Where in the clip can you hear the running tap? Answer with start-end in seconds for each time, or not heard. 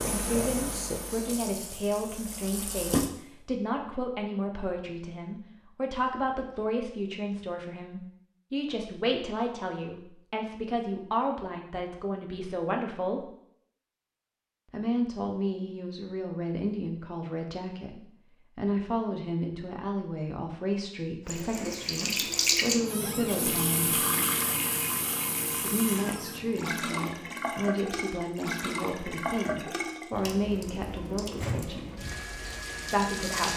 0.0-3.1, 21.2-33.5.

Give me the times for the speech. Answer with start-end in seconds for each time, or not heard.
0.0-13.3, 14.7-24.0, 25.6-31.9, 32.9-33.5.